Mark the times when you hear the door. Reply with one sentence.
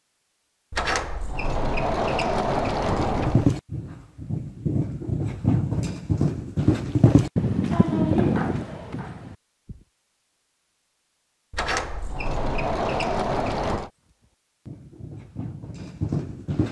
The door can be heard from 0.7 to 3.5 s and from 11.5 to 13.9 s.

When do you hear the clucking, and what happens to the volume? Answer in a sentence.
You can't hear the clucking here.